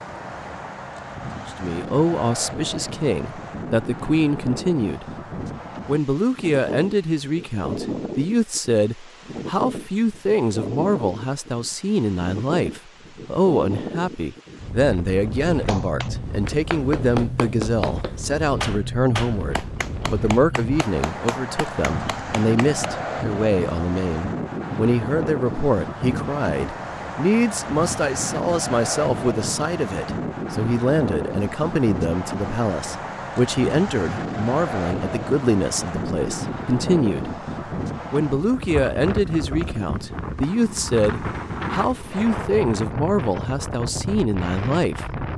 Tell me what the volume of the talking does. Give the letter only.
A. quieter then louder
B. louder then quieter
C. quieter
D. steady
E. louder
D.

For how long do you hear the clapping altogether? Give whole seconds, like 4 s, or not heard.
7 s.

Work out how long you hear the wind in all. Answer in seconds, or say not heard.
45 s.